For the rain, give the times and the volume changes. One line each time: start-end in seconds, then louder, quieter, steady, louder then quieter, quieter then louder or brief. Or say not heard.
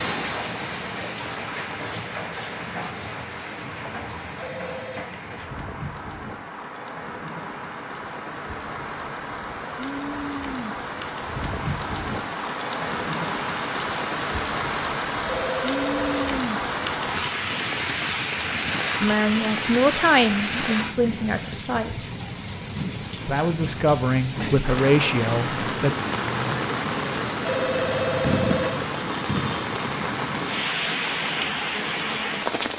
0.0-32.7 louder.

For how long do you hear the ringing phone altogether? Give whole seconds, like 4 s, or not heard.
3 s.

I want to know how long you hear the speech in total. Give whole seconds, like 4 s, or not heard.
6 s.